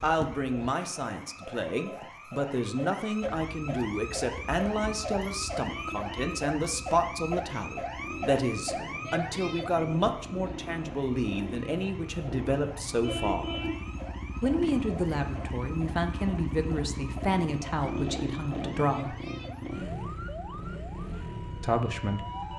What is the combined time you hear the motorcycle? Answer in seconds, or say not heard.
19 s.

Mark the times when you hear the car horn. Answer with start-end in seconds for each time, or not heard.
5.7-6.5, 13.0-13.8.